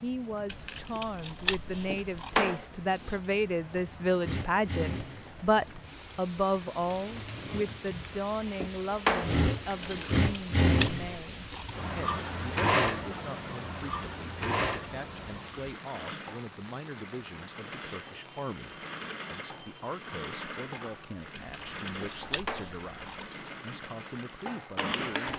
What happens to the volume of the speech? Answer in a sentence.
The volume of the speech goes down.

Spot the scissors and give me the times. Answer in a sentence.
You can hear the scissors from 0.5 to 2.6 s, from 9.8 to 11.8 s and from 21.4 to 23.2 s.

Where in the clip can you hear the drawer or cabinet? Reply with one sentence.
The drawer or cabinet can be heard from 1.9 to 3.1 s, from 8.6 to 10.1 s and from 22.0 to 23.6 s.